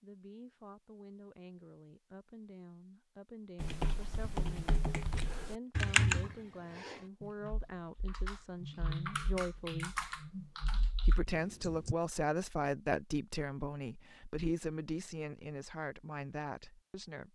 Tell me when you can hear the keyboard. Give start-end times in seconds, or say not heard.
3.6-11.9.